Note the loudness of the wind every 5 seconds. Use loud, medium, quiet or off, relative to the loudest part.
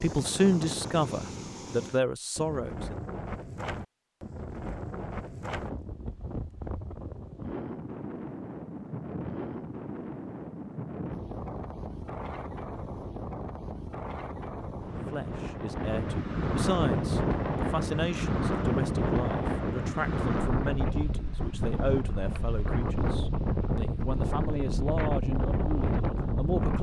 medium, medium, medium, loud, loud, loud.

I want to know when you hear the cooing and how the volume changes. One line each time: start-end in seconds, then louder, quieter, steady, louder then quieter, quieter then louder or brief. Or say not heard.
not heard.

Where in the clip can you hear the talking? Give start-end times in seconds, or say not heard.
0.0-3.0, 15.1-26.7.